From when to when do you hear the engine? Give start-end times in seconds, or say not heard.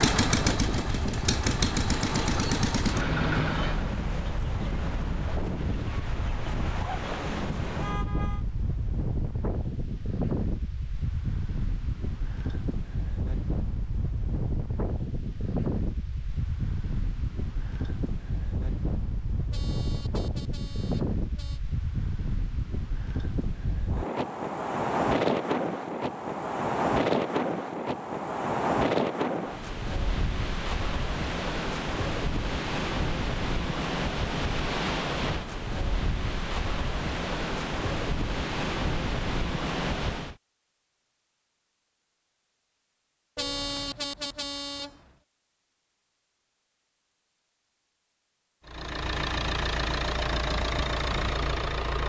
0.0-4.0, 48.6-52.0.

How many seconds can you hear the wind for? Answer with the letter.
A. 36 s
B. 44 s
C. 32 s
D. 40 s
D.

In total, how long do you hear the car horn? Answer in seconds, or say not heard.
4 s.